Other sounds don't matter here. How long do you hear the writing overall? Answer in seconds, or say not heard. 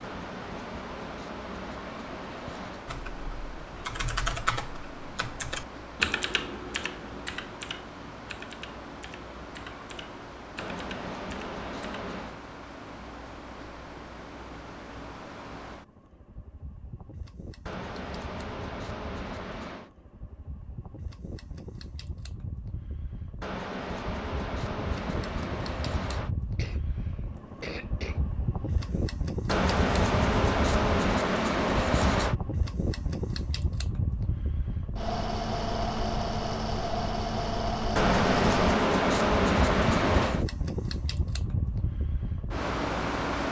15 s.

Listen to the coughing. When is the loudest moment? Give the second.
28 s.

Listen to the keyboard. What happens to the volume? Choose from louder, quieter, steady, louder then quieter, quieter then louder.
quieter.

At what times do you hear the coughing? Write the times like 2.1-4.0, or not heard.
26.6-29.0.